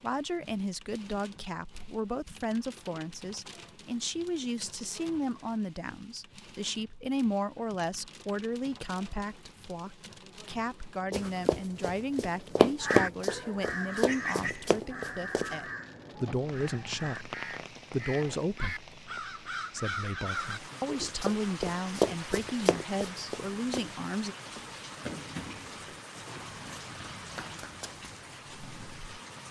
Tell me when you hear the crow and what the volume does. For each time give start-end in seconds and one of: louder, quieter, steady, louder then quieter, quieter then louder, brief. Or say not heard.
12.8-20.6 quieter then louder.